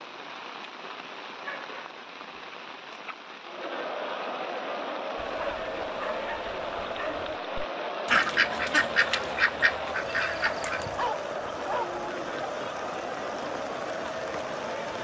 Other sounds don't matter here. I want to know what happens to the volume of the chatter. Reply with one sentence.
The volume of the chatter stays about the same.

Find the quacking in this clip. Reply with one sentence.
The quacking can be heard from 8.1 to 10.8 s.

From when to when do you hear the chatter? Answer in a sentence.
The chatter can be heard from 3.5 to 14.9 s.